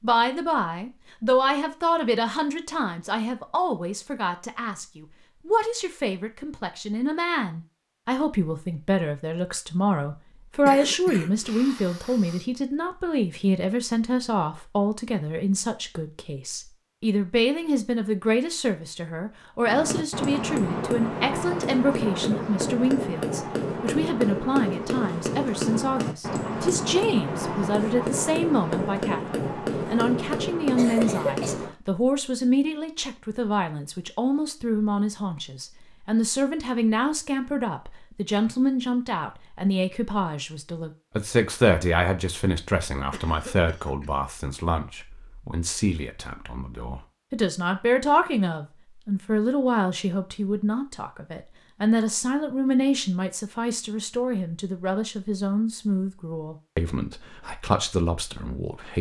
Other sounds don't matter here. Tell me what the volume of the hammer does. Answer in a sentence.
The volume of the hammer stays about the same.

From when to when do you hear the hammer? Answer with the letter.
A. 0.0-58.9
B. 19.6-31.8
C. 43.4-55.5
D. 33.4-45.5
B.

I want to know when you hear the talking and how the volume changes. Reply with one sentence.
The talking can be heard from 0.0 to 58.9 s, at a steady volume.